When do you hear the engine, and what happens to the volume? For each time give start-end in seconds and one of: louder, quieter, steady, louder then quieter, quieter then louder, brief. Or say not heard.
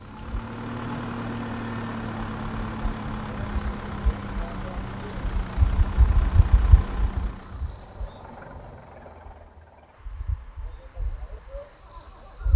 0.0-12.5 quieter.